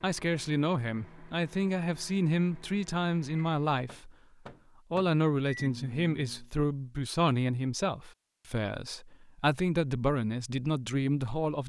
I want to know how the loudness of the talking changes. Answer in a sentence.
The volume of the talking stays about the same.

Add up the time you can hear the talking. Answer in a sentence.
The talking can be heard for 11 seconds in total.